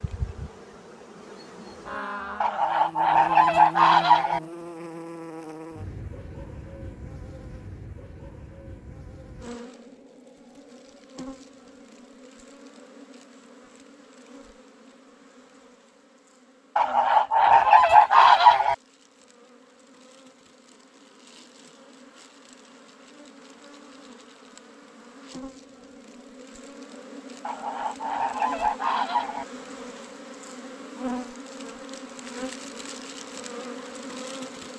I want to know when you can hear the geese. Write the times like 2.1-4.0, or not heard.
2.4-4.4, 16.8-18.8, 27.4-29.4.